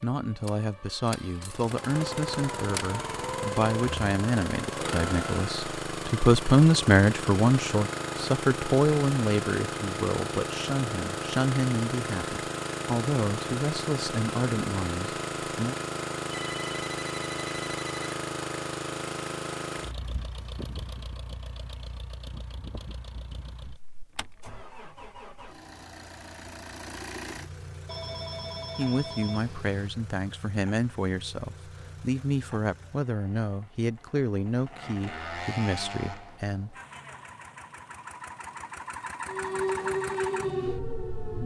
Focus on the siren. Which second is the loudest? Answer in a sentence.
The volume of the siren peaks at 40 seconds.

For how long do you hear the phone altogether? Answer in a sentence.
You can hear the phone for 4 seconds altogether.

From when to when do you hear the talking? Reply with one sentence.
The talking can be heard from 0.0 to 15.8 s and from 28.8 to 36.8 s.